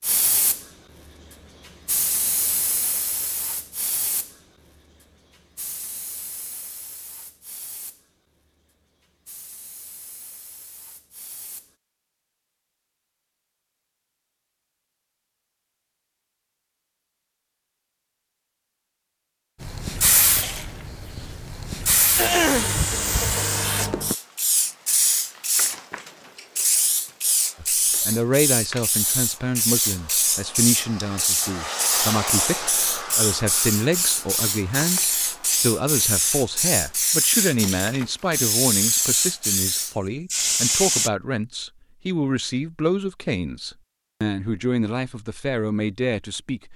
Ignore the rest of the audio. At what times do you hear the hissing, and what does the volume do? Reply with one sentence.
You can hear the hissing from 0.0 to 11.8 s, getting quieter; and from 19.6 to 41.1 s, at a steady volume.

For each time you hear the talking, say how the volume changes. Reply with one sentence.
You can hear the talking from 27.6 to 46.7 s, at a steady volume.